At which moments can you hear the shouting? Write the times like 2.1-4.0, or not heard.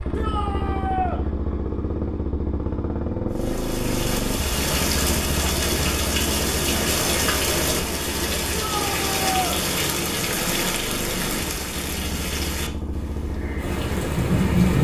0.1-1.2, 8.6-9.6.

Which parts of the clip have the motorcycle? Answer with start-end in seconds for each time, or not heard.
0.0-14.6.